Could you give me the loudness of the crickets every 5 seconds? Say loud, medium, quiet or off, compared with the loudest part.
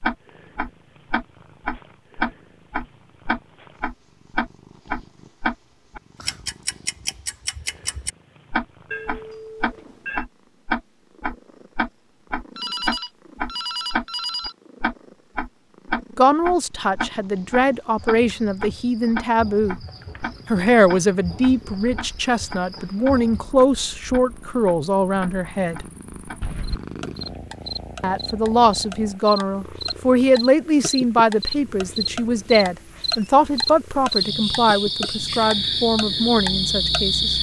off, off, off, quiet, quiet, medium, loud, loud.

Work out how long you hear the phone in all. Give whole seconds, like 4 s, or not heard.
5 s.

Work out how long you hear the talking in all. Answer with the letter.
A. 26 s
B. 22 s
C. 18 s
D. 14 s
C.